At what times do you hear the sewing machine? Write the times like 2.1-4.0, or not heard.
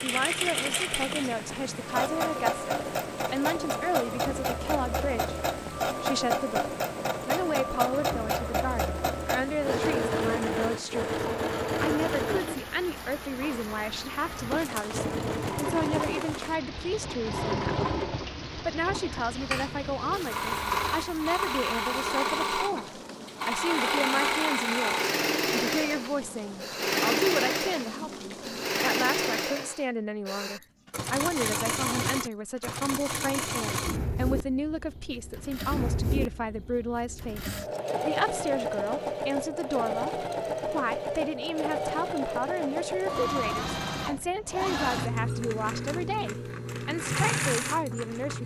0.0-48.4.